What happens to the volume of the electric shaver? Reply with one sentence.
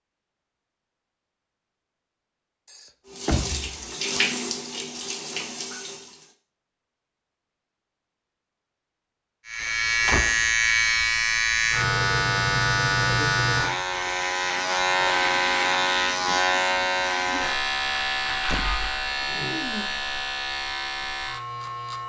The volume of the electric shaver goes down.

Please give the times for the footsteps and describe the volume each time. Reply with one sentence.
The footsteps can't be heard in this clip.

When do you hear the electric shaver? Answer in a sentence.
The electric shaver can be heard from 9.4 to 22.0 s.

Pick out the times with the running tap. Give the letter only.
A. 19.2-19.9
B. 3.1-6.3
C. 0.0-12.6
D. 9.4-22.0
B.